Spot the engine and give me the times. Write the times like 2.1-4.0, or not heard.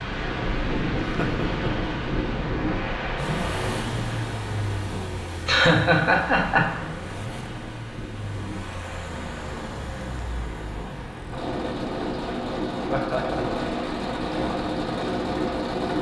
3.1-15.9.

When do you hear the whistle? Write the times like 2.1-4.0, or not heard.
not heard.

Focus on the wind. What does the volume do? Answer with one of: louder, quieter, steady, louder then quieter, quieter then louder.
quieter.